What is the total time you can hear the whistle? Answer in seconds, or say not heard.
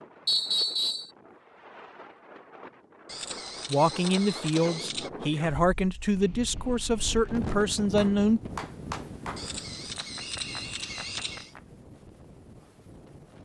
2 s.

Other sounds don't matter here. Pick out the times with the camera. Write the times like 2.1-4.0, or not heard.
3.0-5.1, 9.3-11.6.